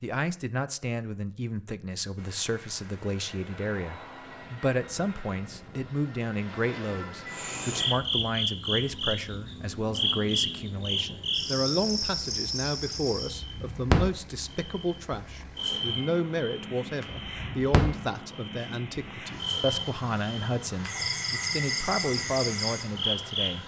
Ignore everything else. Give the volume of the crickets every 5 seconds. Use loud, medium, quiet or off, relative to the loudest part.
off, loud, loud, loud, loud.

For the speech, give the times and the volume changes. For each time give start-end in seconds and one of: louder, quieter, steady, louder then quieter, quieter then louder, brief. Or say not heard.
0.0-23.6 steady.